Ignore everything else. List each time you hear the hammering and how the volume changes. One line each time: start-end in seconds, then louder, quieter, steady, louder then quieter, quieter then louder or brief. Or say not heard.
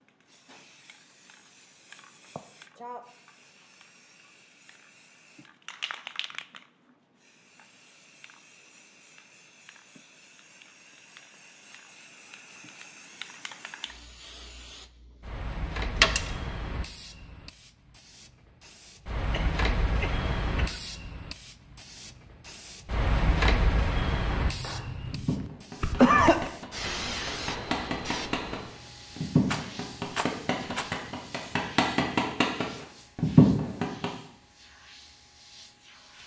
24.4-34.1 louder.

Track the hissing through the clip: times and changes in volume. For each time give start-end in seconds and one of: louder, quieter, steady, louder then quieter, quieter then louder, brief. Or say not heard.
0.0-36.2 louder then quieter.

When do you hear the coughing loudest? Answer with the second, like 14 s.
26 s.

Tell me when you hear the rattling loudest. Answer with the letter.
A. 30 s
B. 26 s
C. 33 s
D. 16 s
D.